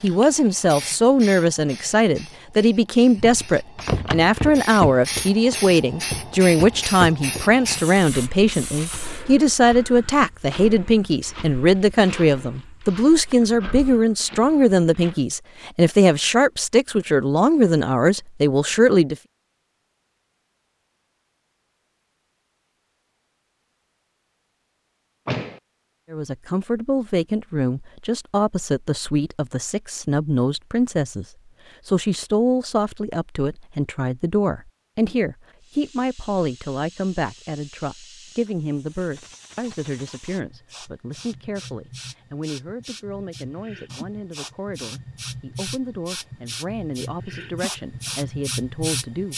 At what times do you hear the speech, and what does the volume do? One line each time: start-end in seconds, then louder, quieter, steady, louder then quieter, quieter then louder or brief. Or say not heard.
0.0-19.1 steady
26.1-49.3 quieter.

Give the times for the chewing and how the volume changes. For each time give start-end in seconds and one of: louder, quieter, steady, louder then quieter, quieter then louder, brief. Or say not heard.
not heard.